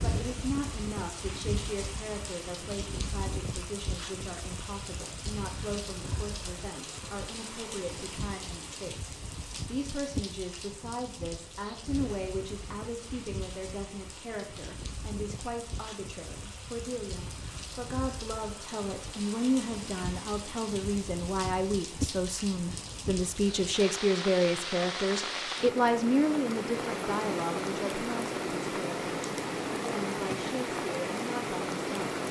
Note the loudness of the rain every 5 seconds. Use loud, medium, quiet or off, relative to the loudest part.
medium, medium, medium, medium, medium, loud, loud.